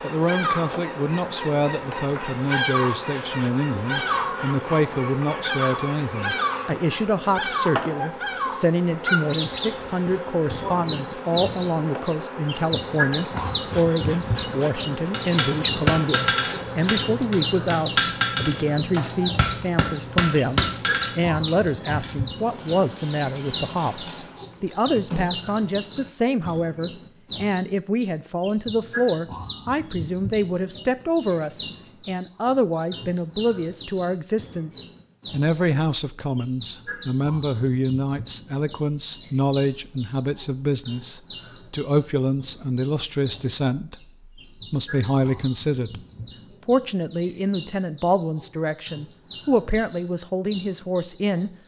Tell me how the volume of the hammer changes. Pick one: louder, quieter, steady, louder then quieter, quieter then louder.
quieter.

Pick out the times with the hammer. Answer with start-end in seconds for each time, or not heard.
15.1-24.4.